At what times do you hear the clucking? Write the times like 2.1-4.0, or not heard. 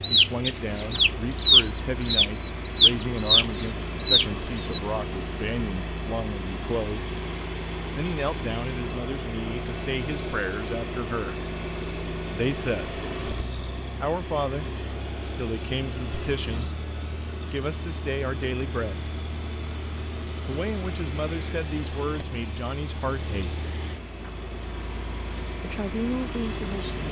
0.0-4.8.